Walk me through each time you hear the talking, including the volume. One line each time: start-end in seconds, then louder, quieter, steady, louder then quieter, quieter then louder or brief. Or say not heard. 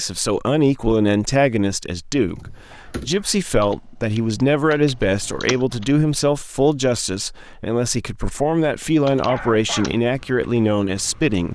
0.0-11.5 steady.